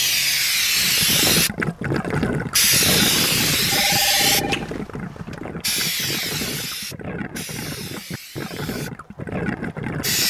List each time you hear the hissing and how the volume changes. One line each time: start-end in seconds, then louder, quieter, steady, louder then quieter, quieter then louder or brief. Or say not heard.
0.0-1.5 brief
2.5-4.4 brief
5.3-10.2 quieter.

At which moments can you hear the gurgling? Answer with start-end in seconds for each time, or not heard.
0.8-10.2.